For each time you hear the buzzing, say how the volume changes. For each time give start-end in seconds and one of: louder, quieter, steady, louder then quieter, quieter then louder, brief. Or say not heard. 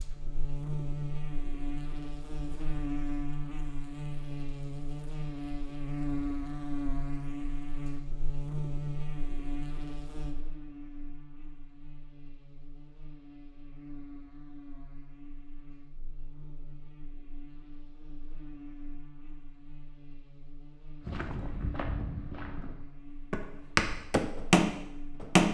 0.0-25.4 quieter.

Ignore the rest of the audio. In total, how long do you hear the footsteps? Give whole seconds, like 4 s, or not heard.
4 s.